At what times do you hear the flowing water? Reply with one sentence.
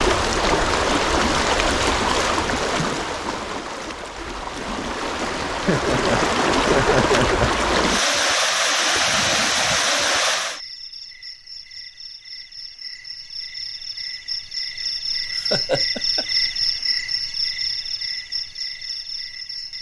You can hear the flowing water from 0.0 to 10.6 s.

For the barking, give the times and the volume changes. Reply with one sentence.
The barking can't be heard in this clip.